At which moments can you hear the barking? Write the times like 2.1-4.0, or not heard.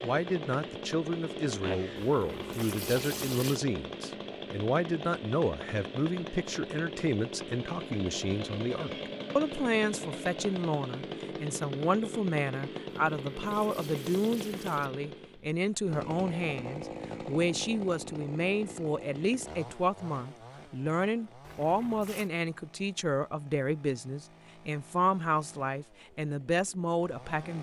not heard.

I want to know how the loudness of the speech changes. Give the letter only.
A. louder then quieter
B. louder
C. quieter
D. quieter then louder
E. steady
E.